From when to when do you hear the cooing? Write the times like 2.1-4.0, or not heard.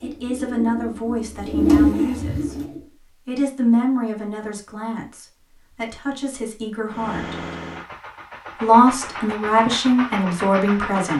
0.0-2.9.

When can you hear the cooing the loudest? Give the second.
2 s.